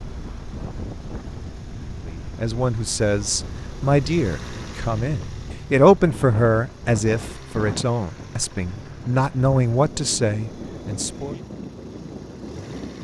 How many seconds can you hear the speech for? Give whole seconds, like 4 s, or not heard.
9 s.